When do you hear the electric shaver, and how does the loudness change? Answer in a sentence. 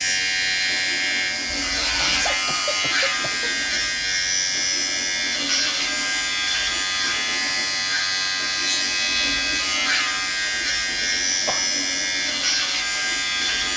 You can hear the electric shaver from 0.0 to 13.7 s, at a steady volume.